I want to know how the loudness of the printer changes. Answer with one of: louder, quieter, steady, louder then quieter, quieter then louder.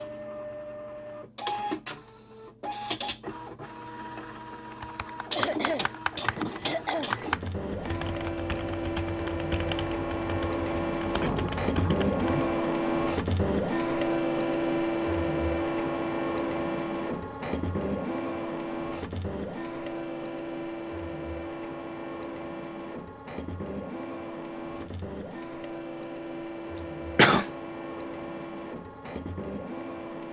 louder then quieter.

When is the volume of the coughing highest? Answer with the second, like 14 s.
27 s.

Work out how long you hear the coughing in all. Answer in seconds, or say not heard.
4 s.